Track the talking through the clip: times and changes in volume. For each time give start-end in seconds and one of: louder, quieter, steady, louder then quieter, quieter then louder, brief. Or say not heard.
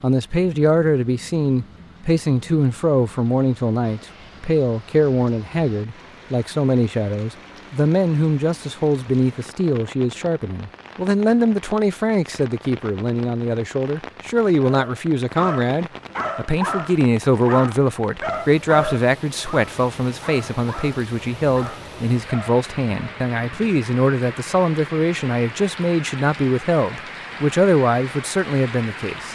0.0-29.3 steady.